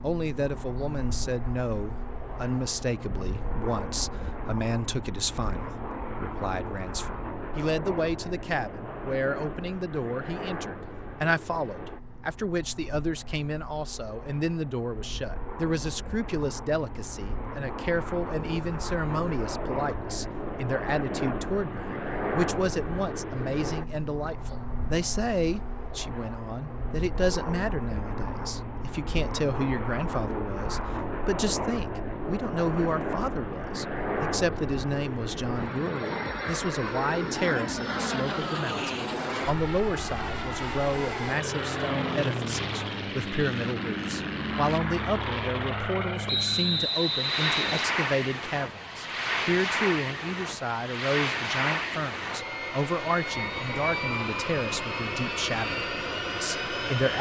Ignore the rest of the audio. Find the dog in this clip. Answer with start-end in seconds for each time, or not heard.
not heard.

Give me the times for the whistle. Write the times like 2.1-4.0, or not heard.
46.2-48.0.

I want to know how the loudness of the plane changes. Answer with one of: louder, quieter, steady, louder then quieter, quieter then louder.
louder.